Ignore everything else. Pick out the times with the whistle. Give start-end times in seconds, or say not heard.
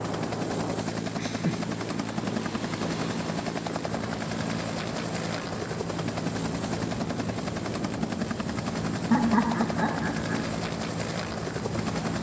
not heard.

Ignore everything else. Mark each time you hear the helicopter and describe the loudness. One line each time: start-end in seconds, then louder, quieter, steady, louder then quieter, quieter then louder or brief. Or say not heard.
0.0-12.1 steady.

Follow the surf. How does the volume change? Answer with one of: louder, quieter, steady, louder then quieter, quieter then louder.
steady.